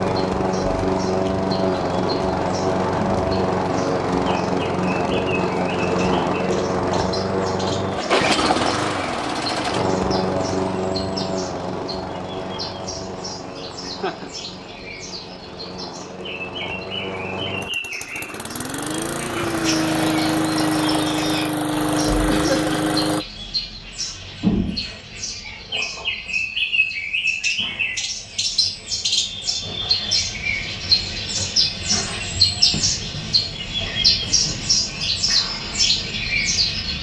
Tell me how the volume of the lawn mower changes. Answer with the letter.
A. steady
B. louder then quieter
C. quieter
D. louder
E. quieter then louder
E.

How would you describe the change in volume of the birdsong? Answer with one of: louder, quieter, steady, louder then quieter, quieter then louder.
louder.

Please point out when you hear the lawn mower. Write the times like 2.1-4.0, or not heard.
0.0-23.2.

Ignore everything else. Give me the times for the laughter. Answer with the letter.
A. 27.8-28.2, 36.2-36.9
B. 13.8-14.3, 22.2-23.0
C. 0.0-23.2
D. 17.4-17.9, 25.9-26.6
B.